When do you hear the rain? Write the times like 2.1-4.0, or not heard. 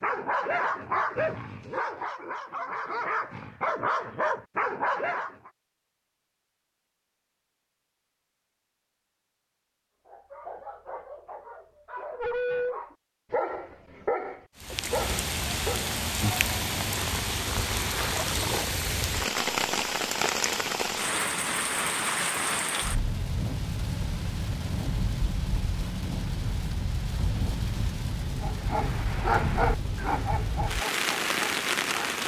14.6-32.2.